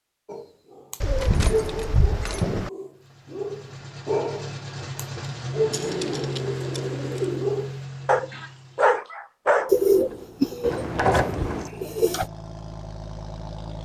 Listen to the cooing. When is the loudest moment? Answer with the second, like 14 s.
10 s.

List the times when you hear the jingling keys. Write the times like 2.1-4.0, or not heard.
1.2-2.5, 5.7-7.3, 10.6-11.7.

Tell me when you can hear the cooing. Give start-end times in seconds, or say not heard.
1.0-2.7, 5.8-7.5, 9.7-12.2.